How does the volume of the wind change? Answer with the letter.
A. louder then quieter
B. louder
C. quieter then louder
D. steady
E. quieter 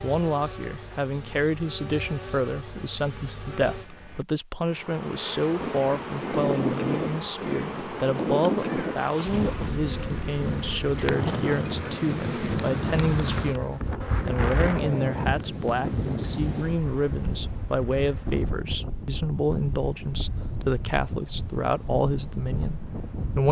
E.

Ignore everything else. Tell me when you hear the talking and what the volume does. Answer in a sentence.
You can hear the talking from 0.0 to 23.4 s, at a steady volume.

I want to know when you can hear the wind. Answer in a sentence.
You can hear the wind from 5.5 to 23.4 s.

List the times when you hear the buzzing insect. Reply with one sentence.
The buzzing insect can be heard from 0.0 to 18.4 s.